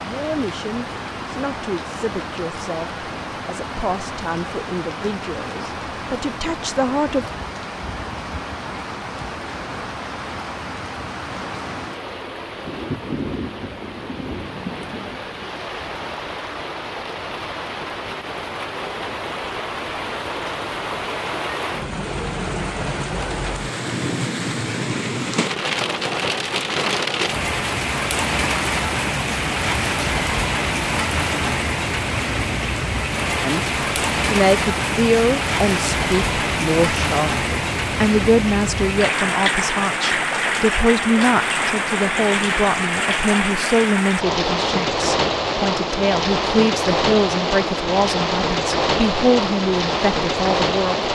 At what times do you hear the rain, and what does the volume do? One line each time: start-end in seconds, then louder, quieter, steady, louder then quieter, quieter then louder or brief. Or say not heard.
0.0-51.1 louder.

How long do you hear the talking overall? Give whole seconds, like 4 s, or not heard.
25 s.